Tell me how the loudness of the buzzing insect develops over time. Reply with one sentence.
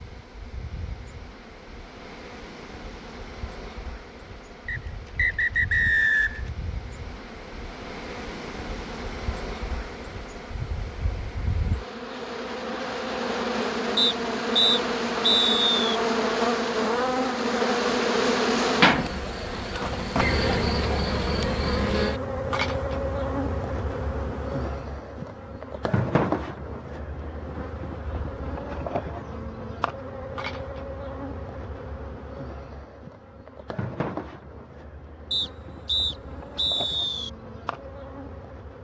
The loudness of the buzzing insect goes up, then down.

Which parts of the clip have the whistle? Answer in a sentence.
You can hear the whistle from 4.7 to 6.5 s, from 13.9 to 16.0 s and from 35.3 to 37.3 s.